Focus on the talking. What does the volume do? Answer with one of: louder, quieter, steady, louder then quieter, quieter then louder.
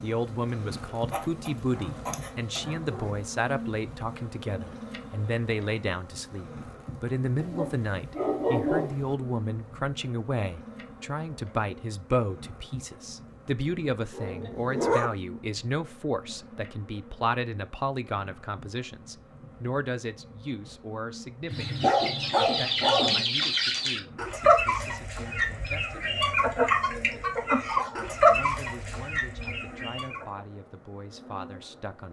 quieter.